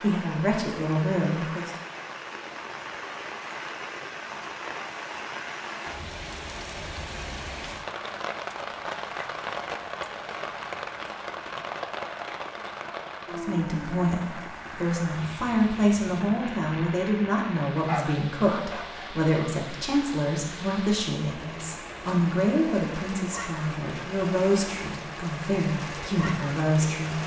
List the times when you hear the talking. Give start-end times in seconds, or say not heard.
0.0-1.7, 13.3-27.2.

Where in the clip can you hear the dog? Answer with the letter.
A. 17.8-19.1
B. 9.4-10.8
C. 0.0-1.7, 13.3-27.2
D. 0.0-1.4
A.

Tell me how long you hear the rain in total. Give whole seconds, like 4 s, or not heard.
27 s.